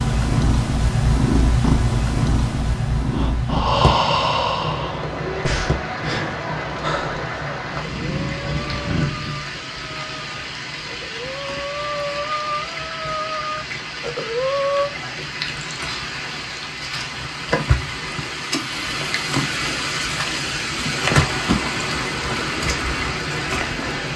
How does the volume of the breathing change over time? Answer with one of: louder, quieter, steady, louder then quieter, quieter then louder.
quieter then louder.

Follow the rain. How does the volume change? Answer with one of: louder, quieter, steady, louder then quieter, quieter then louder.
louder.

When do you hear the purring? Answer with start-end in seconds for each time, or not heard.
0.0-9.6.